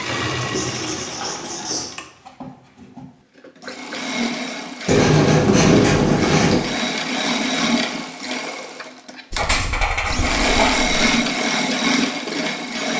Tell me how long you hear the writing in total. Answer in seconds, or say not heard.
5 s.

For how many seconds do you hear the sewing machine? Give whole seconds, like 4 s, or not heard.
13 s.